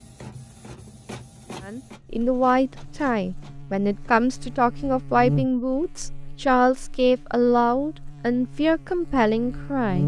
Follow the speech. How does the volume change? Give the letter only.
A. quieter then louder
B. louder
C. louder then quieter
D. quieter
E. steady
E.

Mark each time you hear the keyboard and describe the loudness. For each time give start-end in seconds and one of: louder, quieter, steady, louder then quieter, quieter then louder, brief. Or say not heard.
not heard.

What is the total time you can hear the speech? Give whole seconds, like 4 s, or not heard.
8 s.